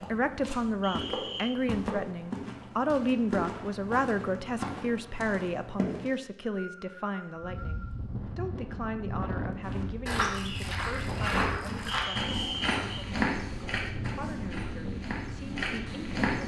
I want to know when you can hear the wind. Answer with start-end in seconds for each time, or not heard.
7.3-16.4.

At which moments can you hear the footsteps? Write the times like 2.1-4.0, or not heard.
0.0-6.1, 9.6-16.4.